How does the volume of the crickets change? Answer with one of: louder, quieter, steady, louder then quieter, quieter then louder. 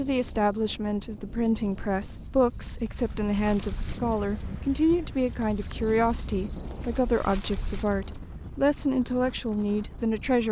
louder then quieter.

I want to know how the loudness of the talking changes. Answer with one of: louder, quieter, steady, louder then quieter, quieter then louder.
steady.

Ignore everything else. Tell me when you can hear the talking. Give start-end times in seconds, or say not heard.
0.0-10.4.